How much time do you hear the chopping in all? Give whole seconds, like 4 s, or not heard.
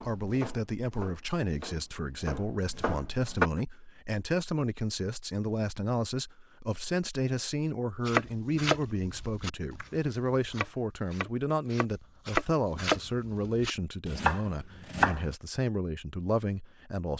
11 s.